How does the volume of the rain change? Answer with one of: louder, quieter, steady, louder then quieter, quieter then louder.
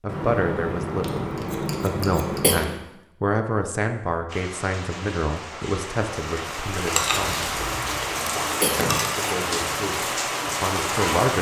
louder.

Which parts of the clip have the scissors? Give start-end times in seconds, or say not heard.
0.1-2.8, 7.2-8.3.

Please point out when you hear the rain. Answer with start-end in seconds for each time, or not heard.
4.2-11.3.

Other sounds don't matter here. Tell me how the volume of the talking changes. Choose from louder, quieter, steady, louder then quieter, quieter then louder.
quieter then louder.